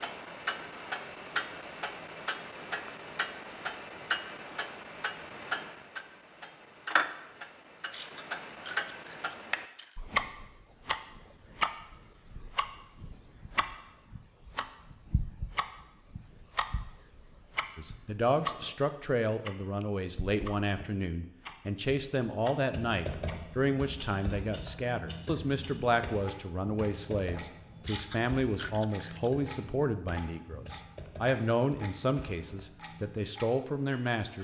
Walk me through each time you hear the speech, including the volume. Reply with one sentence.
The speech can be heard from 17.8 to 34.3 s, at a steady volume.